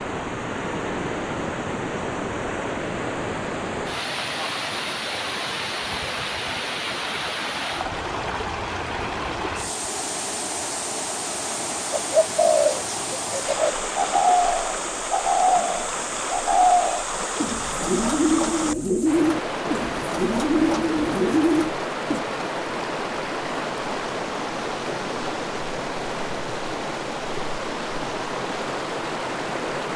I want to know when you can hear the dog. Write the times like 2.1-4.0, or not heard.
not heard.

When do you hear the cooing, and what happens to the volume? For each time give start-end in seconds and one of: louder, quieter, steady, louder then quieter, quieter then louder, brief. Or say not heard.
11.9-22.2 steady.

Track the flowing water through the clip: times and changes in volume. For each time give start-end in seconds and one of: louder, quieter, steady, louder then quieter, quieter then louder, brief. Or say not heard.
0.0-29.9 steady.